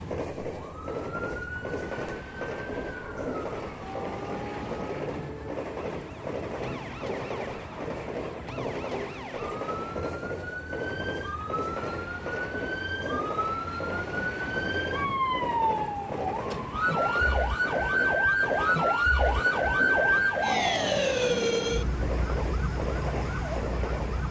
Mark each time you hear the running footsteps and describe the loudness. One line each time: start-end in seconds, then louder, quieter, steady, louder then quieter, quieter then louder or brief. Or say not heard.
not heard.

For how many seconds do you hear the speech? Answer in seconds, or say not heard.
not heard.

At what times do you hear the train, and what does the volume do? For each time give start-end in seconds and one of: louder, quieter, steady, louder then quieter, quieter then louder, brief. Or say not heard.
0.0-24.2 steady.